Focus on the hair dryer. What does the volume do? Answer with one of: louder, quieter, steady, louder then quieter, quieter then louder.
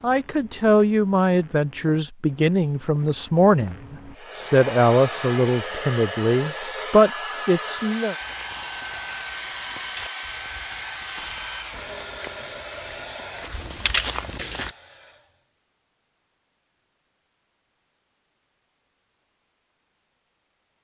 quieter.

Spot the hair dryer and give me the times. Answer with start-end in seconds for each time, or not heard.
4.1-15.5.